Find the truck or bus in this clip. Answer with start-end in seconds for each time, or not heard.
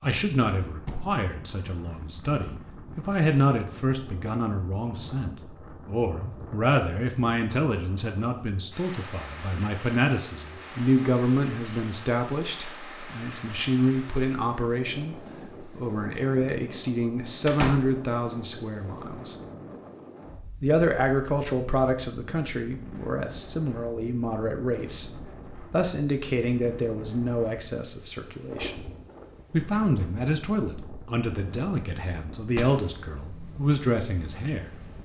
not heard.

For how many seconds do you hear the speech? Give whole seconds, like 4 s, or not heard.
33 s.